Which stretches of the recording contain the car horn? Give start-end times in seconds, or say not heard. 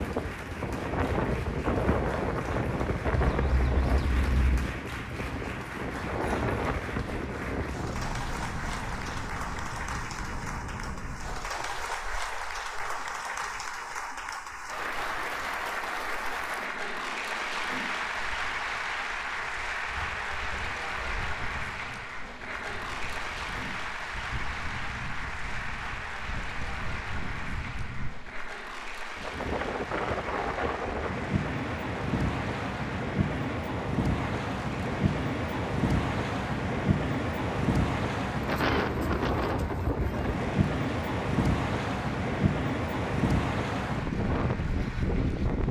3.1-4.7.